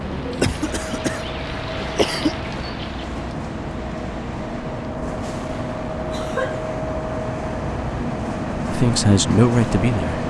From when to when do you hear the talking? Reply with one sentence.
You can hear the talking from 8.7 to 10.2 s.